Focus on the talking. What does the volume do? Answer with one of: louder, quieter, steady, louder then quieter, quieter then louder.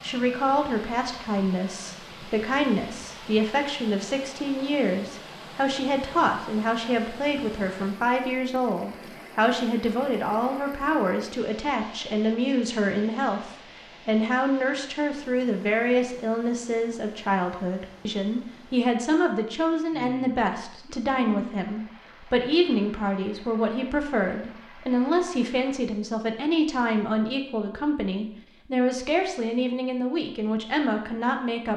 steady.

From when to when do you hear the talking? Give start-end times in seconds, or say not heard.
0.0-31.7.